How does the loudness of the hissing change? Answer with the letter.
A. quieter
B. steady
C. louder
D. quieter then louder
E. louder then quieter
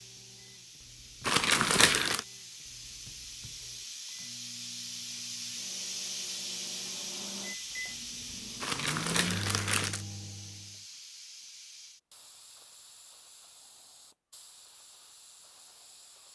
E.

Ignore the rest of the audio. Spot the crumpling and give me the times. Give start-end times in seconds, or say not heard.
1.2-2.2, 8.6-10.1.